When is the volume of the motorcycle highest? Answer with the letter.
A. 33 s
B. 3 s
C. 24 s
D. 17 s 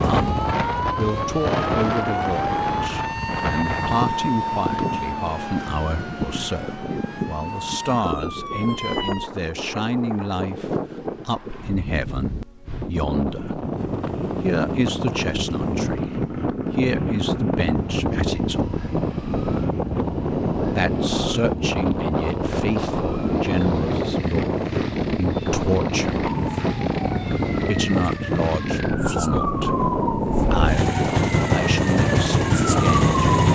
A.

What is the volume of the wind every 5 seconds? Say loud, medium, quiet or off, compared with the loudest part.
loud, medium, medium, loud, loud, loud, loud.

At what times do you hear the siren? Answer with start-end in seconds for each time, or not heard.
0.0-9.3, 26.2-33.4.